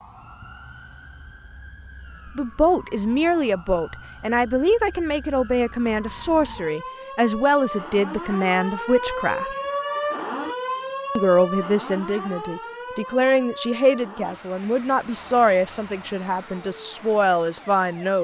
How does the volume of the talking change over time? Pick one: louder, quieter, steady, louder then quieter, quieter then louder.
steady.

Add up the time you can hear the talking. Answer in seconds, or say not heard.
14 s.